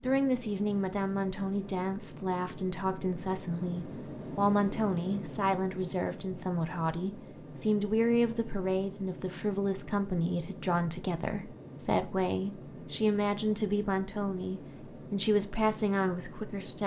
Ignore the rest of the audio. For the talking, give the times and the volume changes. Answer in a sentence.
You can hear the talking from 0.0 to 16.8 s, at a steady volume.